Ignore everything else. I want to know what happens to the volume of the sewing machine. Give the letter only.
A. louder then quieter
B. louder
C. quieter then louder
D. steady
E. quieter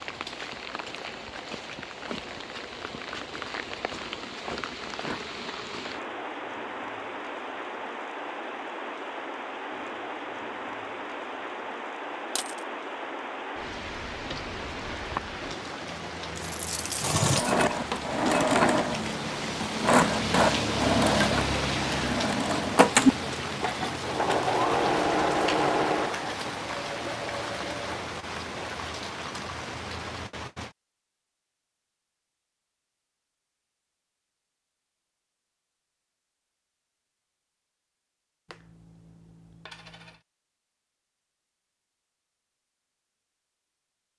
E.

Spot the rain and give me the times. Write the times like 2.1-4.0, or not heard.
0.0-30.7.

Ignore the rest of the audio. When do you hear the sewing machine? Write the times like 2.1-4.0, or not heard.
17.0-28.8.